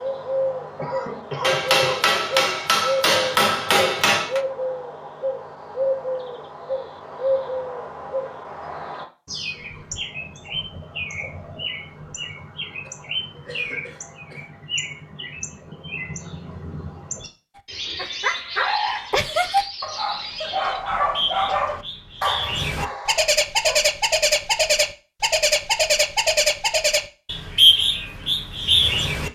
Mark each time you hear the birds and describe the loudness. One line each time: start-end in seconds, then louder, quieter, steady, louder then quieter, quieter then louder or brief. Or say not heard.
0.0-29.3 quieter then louder.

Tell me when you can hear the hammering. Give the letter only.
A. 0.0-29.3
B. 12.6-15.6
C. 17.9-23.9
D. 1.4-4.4
D.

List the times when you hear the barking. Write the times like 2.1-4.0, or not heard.
17.9-23.9.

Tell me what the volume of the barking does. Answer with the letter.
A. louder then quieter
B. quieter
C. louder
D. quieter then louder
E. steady
B.